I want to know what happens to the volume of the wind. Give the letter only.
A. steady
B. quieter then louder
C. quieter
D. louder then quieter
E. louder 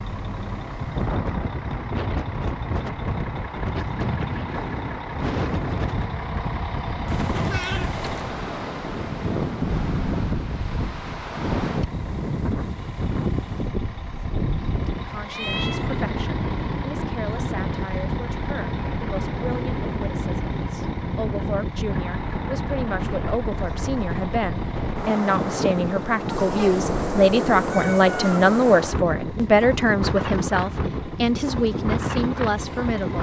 A.